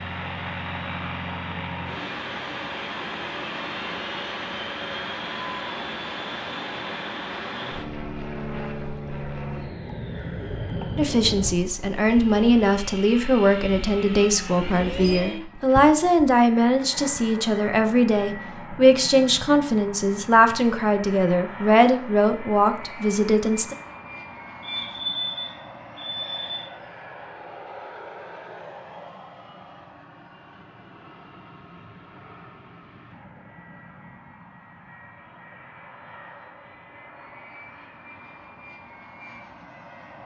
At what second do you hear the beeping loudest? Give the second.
25 s.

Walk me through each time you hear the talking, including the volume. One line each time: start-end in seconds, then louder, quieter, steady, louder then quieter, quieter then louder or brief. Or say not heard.
10.9-23.8 steady.